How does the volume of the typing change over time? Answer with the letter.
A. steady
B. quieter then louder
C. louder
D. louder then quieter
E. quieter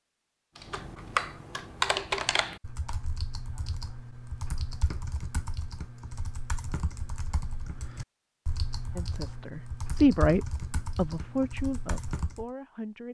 E.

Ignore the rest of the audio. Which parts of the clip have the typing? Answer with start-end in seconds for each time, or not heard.
0.6-12.4.